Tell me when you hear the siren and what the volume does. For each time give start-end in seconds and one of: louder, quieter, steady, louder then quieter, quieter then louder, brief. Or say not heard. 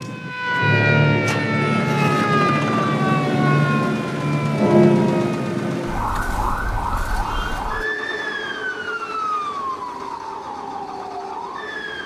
0.0-12.0 quieter.